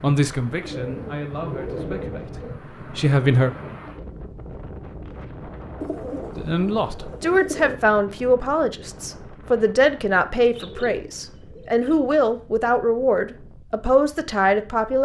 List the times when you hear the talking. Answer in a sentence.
You can hear the talking from 0.0 to 3.5 s and from 6.3 to 14.9 s.